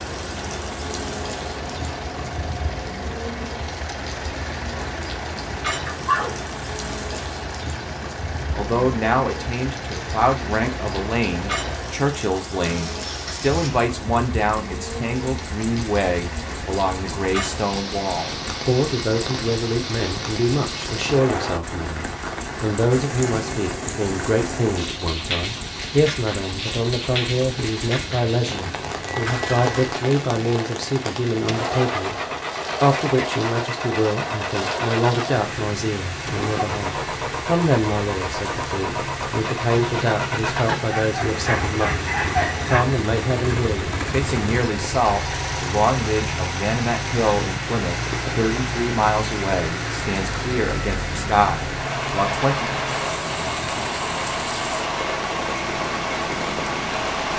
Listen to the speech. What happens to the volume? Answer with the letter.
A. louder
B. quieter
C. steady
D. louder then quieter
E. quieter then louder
C.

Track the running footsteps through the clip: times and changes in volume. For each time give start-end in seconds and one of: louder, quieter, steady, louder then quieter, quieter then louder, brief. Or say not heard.
not heard.